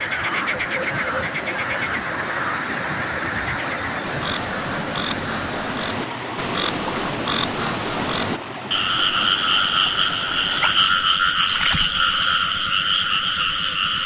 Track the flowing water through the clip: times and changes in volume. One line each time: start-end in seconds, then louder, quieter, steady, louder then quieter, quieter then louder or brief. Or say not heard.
0.0-11.2 quieter.